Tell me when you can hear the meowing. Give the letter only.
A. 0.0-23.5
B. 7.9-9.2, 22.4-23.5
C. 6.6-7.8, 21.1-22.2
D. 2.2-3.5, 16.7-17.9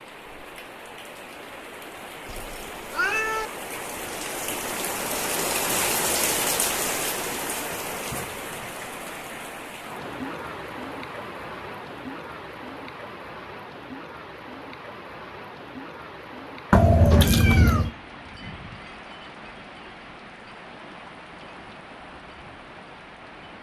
D.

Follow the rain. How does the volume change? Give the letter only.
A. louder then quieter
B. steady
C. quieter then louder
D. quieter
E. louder
A.